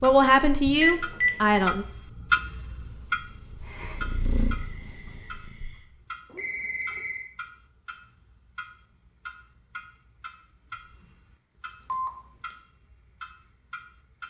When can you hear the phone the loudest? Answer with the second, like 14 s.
1 s.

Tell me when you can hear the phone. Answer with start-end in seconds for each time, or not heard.
0.8-1.6, 6.3-7.3, 11.8-12.6.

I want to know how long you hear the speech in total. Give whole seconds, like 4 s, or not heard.
2 s.